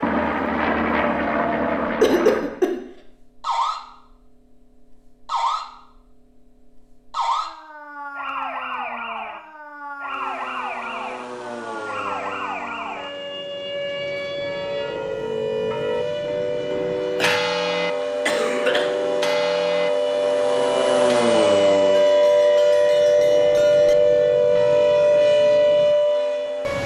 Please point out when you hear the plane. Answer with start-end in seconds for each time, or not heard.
0.0-2.6, 10.0-26.8.